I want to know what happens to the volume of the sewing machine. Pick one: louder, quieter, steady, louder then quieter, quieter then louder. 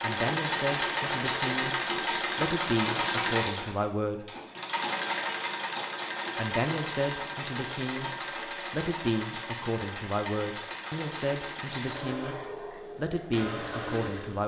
quieter.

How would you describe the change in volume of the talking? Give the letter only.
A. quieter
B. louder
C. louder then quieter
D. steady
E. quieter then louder
D.